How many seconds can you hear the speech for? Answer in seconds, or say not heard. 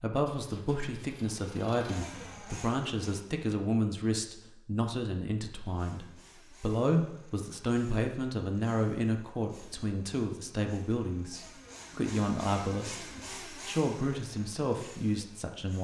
16 s.